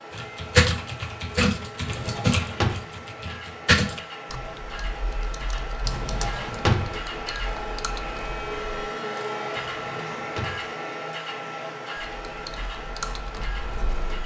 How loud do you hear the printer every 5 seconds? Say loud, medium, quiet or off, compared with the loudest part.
medium, loud, loud.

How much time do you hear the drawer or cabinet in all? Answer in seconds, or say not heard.
3 s.